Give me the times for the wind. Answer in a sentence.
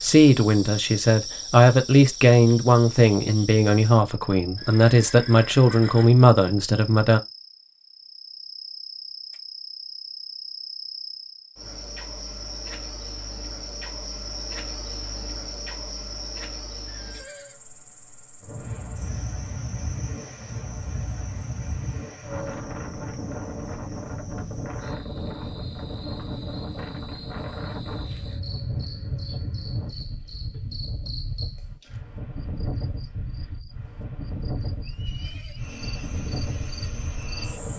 The wind can be heard from 18.4 to 37.7 s.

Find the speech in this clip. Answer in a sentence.
You can hear the speech from 0.0 to 7.2 s.